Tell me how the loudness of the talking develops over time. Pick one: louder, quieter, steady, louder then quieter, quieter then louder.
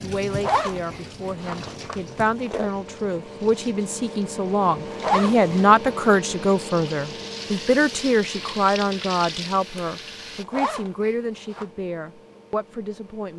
louder then quieter.